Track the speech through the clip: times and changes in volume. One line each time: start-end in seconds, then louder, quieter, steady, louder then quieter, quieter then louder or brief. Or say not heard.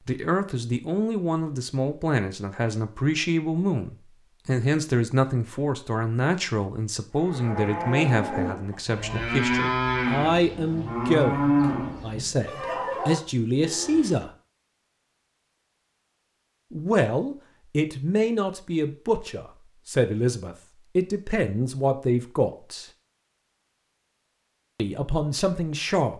0.1-14.3 steady
16.7-22.9 steady
24.8-26.1 brief.